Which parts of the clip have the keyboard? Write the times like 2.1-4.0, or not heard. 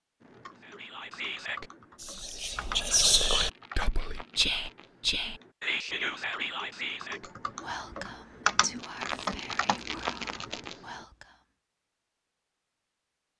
0.3-10.9.